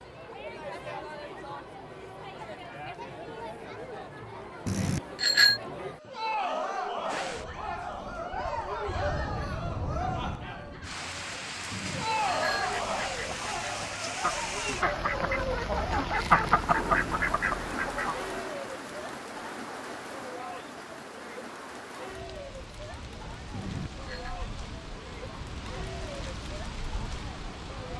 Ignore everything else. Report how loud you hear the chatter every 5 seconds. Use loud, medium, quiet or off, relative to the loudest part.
medium, loud, loud, medium, medium, medium.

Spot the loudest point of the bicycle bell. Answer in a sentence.
The volume of the bicycle bell peaks at 5 seconds.